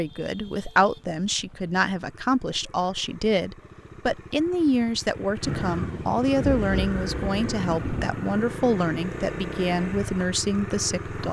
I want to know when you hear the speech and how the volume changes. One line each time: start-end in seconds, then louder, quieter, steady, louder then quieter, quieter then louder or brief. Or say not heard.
0.0-11.2 steady.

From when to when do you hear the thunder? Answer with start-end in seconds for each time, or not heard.
5.4-8.2.